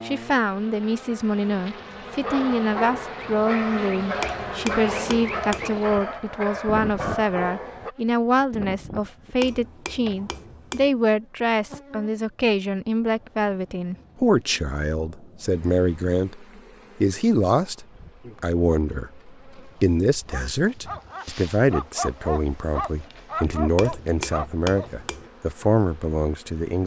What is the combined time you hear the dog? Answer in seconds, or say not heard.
11 s.